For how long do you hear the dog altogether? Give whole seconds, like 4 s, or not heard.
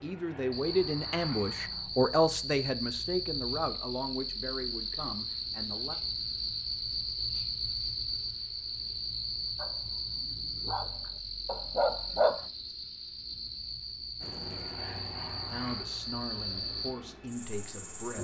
3 s.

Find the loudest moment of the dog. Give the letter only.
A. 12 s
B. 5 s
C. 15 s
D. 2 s
A.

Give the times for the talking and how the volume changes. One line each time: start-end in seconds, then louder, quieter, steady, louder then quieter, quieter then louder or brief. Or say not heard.
0.0-6.0 quieter
15.5-18.1 brief.